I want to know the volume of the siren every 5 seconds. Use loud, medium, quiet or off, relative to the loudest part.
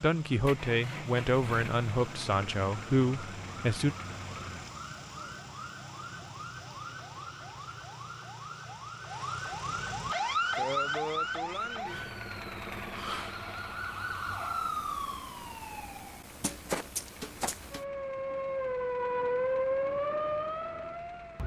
medium, medium, loud, loud, loud.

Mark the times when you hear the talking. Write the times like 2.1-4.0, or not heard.
0.0-4.0.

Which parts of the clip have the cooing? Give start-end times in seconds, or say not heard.
not heard.